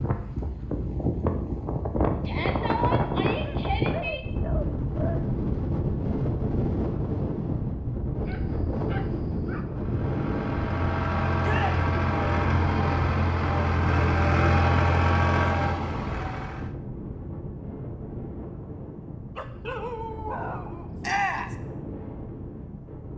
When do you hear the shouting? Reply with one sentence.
The shouting can be heard from 2.2 to 4.2 s, from 11.4 to 11.8 s and from 21.0 to 21.6 s.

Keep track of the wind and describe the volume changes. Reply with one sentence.
The volume of the wind goes down.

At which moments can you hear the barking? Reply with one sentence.
You can hear the barking from 3.4 to 5.2 s, from 8.2 to 9.7 s and from 19.4 to 21.2 s.